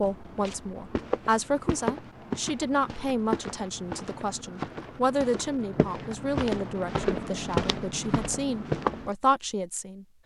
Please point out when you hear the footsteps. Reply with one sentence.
The footsteps can be heard from 0.0 to 9.1 s.